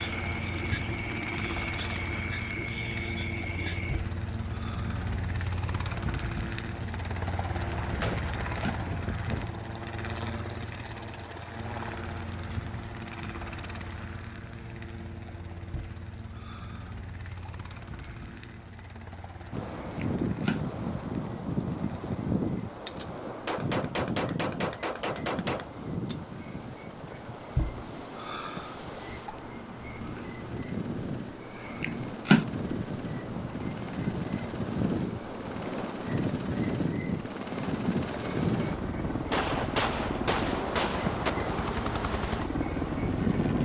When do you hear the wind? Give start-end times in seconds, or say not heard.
19.5-43.6.